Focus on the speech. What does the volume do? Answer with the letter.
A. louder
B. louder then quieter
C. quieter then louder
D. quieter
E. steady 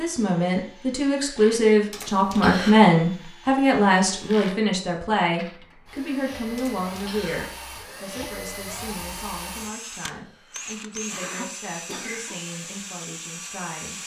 D.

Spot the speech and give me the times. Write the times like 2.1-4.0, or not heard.
0.0-14.0.